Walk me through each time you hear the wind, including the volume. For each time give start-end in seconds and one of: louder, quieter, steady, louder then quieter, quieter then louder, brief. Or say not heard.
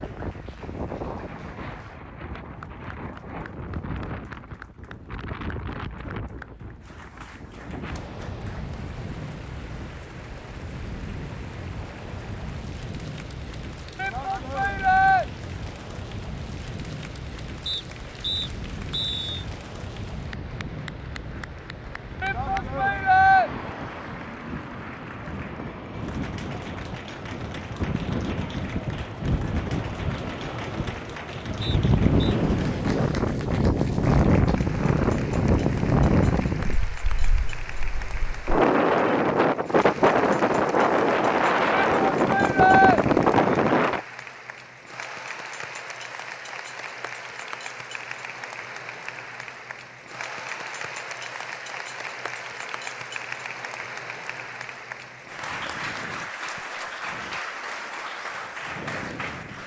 0.0-44.0 louder.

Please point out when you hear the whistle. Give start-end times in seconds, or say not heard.
17.6-19.4, 31.6-32.4.